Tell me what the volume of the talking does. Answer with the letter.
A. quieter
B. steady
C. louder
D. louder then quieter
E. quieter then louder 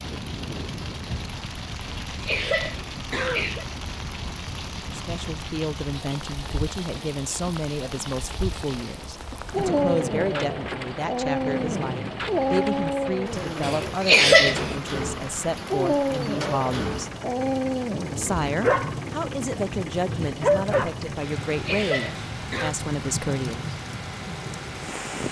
B.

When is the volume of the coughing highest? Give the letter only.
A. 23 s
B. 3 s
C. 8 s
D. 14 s
D.